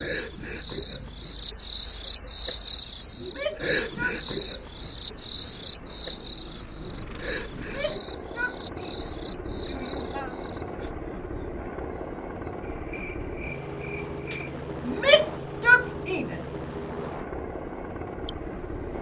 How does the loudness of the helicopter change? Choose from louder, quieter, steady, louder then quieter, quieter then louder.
louder.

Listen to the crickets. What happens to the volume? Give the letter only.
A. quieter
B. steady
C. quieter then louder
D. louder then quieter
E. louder
A.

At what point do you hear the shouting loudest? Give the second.
16 s.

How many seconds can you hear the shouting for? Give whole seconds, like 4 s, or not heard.
6 s.